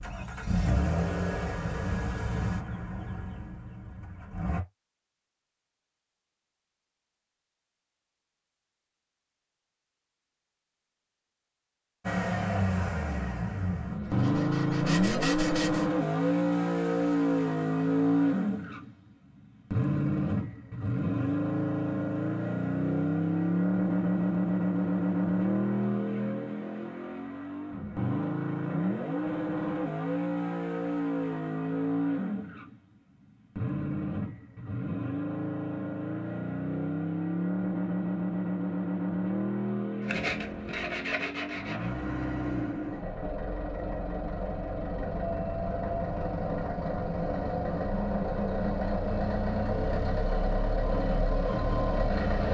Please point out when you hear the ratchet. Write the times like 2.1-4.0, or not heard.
not heard.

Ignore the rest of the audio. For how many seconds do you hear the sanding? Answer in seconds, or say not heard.
4 s.